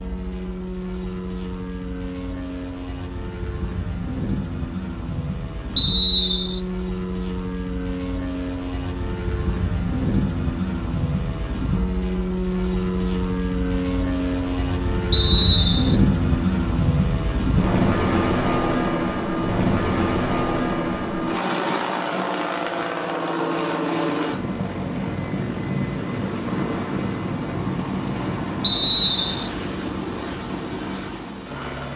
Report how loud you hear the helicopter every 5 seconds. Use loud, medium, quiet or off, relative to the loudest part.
medium, medium, loud, loud, loud, medium, medium.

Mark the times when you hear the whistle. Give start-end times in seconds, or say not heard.
5.8-6.6, 15.1-16.0, 28.6-29.5.